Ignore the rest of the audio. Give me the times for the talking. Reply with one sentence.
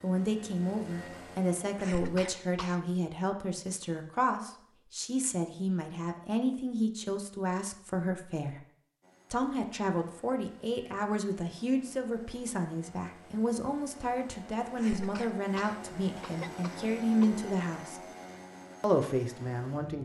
The talking can be heard from 0.0 to 8.6 s, from 9.3 to 18.0 s and from 18.8 to 20.0 s.